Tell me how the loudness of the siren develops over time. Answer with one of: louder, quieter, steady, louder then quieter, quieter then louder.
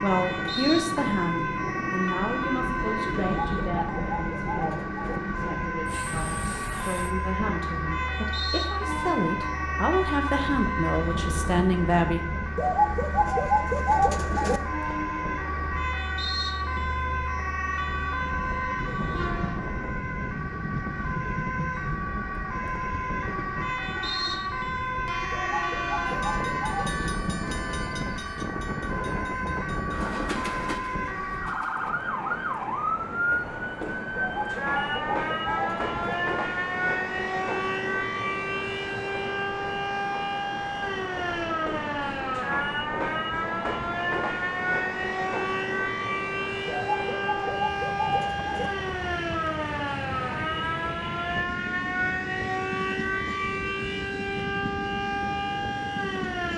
steady.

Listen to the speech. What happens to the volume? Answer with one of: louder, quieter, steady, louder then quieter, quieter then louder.
quieter then louder.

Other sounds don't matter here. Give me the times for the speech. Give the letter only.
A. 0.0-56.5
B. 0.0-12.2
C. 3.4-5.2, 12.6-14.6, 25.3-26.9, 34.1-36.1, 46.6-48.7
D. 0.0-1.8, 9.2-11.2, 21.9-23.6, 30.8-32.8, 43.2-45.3
B.